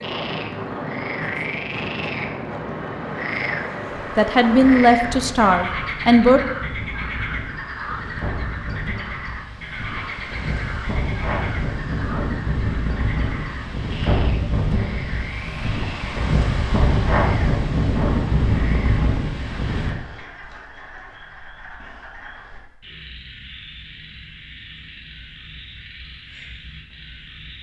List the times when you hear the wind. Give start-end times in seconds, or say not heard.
0.0-19.9.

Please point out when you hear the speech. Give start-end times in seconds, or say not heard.
4.2-6.4.